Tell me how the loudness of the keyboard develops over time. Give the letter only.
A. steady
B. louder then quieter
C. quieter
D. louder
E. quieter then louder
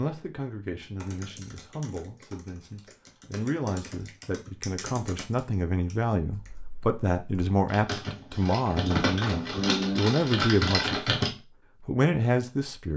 D.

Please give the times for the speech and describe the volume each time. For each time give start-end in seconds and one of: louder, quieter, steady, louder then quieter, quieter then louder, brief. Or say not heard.
0.0-11.2 louder
11.8-12.9 brief.